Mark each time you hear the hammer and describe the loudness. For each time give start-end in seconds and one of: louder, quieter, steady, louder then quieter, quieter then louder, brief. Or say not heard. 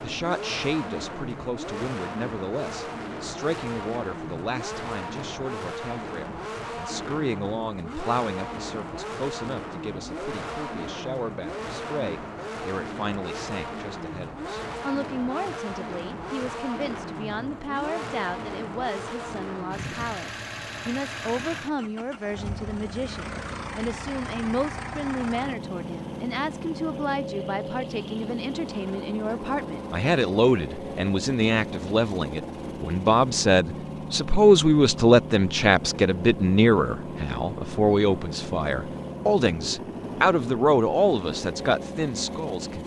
not heard.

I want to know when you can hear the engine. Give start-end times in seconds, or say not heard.
0.0-42.8.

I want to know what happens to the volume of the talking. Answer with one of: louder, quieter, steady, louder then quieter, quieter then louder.
louder.